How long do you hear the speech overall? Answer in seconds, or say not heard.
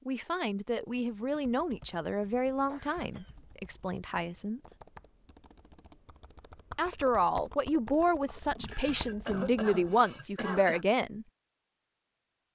9 s.